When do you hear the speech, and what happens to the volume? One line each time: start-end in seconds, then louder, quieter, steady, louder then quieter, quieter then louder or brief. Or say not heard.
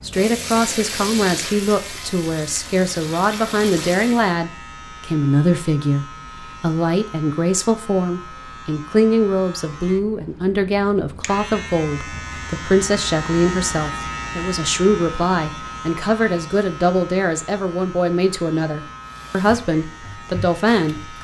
0.0-21.1 steady.